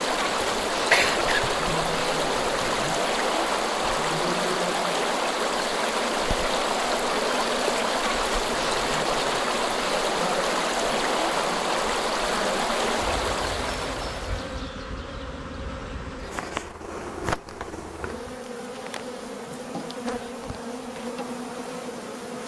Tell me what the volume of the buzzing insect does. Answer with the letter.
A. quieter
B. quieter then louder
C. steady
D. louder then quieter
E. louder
C.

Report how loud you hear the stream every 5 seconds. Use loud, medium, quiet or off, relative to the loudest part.
loud, loud, loud, off, off.